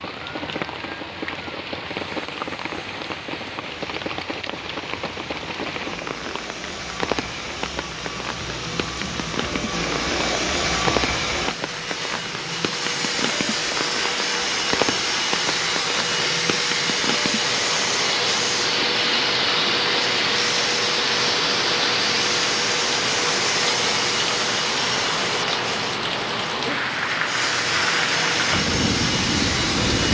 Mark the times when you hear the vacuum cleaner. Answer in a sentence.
The vacuum cleaner can be heard from 0.1 to 30.0 s.